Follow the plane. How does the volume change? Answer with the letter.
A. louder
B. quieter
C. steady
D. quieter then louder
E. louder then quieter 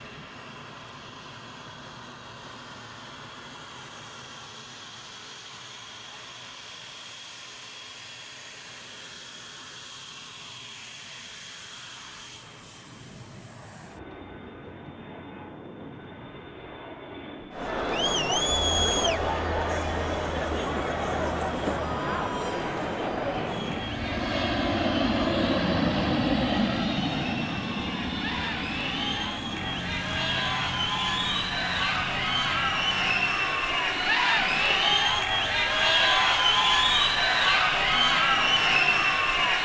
E.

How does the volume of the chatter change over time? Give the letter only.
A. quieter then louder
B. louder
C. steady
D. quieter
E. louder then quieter
A.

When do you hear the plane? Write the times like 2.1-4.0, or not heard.
0.0-39.6.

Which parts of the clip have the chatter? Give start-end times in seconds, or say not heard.
17.5-39.6.